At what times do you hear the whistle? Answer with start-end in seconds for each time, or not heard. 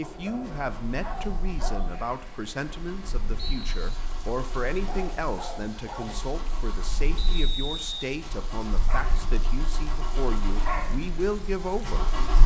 3.4-4.0, 7.2-7.9.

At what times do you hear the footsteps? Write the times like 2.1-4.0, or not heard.
not heard.